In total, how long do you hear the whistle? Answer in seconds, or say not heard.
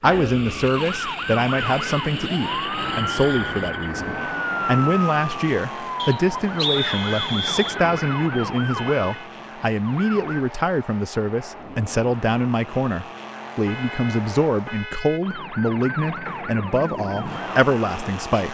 2 s.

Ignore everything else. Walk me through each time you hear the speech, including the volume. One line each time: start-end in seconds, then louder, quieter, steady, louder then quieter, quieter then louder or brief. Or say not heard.
0.0-18.5 steady.